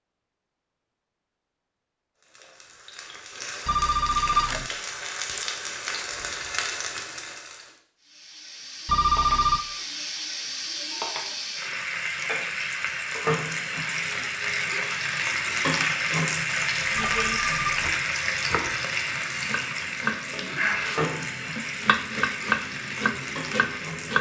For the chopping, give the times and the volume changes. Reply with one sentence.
You can hear the chopping from 16.8 to 24.1 s, getting louder.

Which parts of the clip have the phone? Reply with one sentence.
You can hear the phone from 3.6 to 4.7 s, from 8.8 to 9.7 s and from 17.2 to 17.9 s.